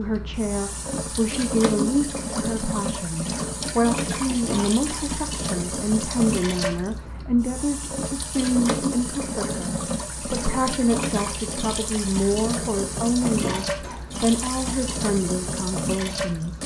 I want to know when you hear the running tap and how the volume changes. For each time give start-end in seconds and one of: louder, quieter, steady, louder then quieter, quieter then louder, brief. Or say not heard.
0.0-16.6 steady.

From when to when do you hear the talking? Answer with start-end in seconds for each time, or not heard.
0.0-16.6.